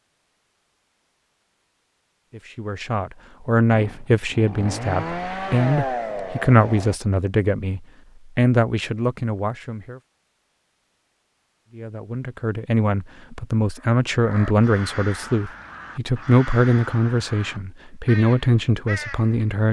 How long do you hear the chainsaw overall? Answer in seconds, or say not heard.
3 s.